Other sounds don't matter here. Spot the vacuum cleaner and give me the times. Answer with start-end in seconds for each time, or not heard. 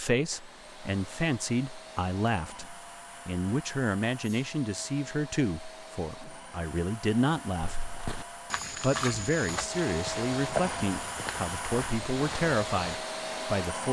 0.0-13.8.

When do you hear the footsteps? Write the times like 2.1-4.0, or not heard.
7.6-13.0.